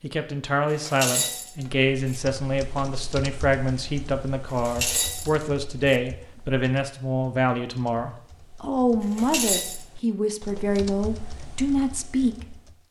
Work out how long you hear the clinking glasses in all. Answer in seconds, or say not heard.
4 s.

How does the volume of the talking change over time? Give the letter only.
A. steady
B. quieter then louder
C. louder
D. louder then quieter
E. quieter
A.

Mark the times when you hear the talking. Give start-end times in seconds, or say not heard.
0.0-12.6.